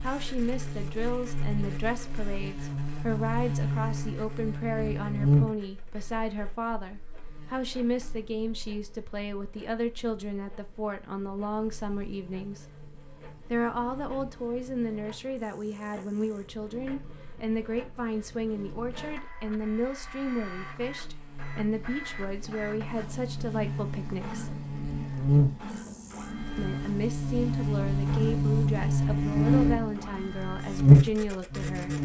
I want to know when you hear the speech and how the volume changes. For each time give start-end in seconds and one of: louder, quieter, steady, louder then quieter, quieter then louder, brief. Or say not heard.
0.0-12.7 steady
13.5-24.5 steady
26.6-32.0 steady.